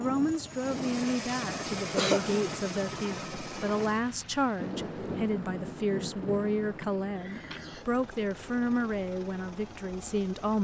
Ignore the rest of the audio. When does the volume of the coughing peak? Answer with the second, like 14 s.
2 s.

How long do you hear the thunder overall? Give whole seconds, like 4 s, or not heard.
2 s.